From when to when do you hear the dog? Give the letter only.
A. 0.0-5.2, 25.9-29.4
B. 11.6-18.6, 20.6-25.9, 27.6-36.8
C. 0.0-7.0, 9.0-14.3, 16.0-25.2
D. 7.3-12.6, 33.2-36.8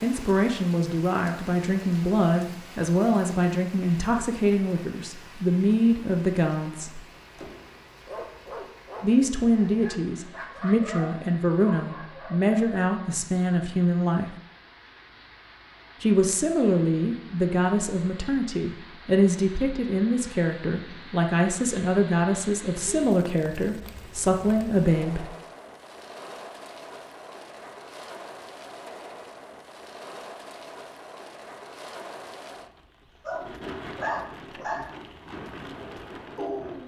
D.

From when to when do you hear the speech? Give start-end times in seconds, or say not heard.
0.0-7.0, 9.0-14.3, 16.0-25.2.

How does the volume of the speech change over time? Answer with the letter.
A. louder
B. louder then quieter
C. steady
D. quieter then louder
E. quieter
C.